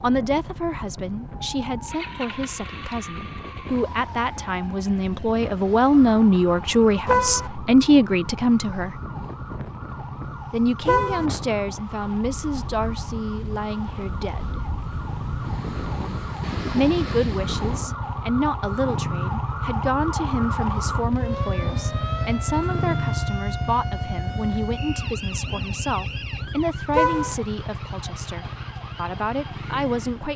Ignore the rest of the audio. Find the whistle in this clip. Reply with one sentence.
You can hear the whistle from 24.8 to 26.4 s.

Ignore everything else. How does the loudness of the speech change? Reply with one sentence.
The loudness of the speech goes up, then down.